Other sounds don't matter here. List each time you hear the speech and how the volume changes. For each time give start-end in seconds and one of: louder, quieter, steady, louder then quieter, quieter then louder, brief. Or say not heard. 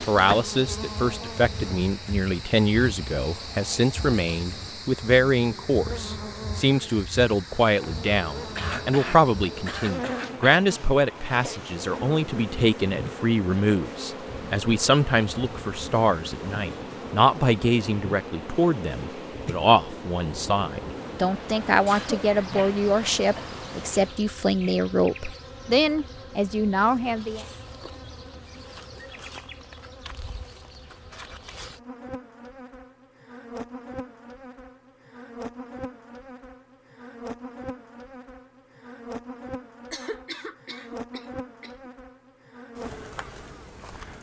0.1-27.4 steady.